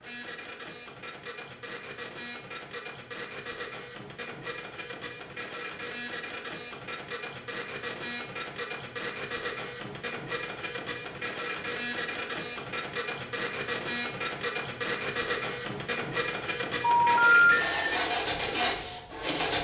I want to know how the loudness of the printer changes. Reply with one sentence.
The volume of the printer goes up.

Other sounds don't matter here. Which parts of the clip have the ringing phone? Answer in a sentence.
You can hear the ringing phone from 16.8 to 17.8 s.